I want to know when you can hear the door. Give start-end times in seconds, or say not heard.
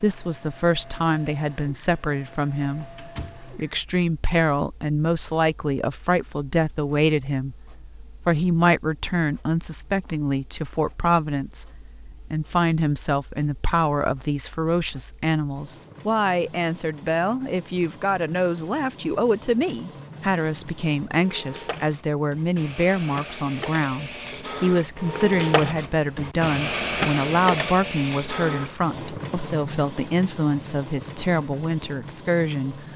2.6-3.5.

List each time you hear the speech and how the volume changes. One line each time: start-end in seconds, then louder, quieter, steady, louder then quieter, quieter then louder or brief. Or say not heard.
0.0-32.9 steady.